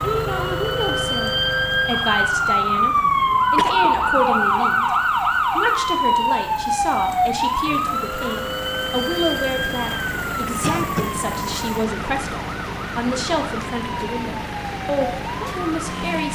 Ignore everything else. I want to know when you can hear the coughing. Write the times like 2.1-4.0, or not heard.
3.3-3.9, 10.6-11.2.